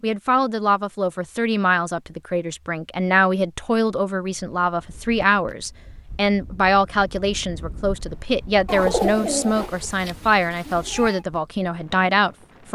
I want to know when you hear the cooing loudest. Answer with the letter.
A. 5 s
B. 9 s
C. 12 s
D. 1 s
B.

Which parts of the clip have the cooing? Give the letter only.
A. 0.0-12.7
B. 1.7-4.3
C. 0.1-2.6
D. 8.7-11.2
D.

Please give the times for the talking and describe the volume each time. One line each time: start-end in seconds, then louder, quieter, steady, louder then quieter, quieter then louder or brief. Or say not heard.
0.0-12.7 steady.